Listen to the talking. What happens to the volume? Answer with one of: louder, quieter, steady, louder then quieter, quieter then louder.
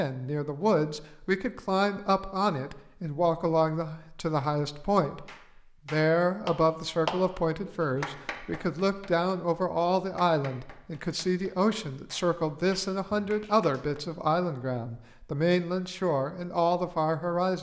steady.